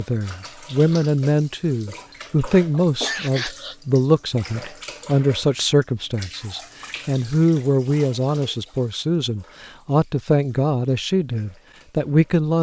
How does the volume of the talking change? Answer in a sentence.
The volume of the talking stays about the same.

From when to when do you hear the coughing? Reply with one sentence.
The coughing can be heard from 2.8 to 3.8 s.